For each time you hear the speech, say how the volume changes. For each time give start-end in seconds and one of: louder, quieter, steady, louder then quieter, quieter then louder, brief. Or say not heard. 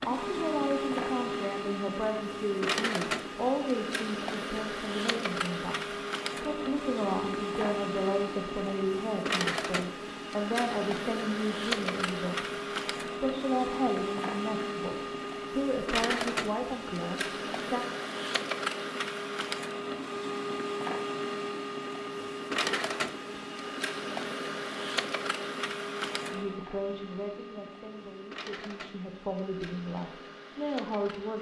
0.0-17.9 steady
26.3-31.3 quieter then louder.